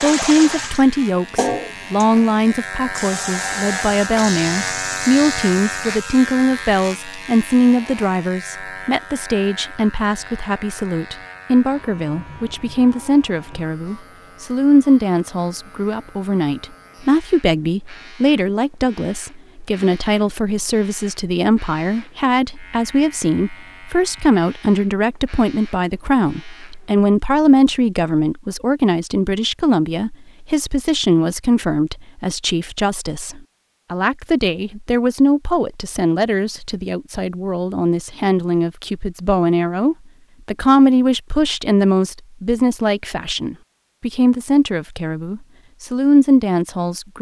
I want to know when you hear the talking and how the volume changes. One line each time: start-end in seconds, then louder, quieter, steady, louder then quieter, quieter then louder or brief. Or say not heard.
0.0-47.1 steady.